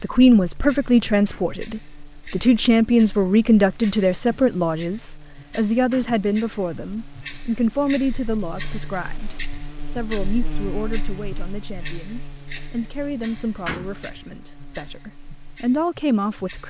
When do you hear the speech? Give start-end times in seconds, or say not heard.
0.0-16.6.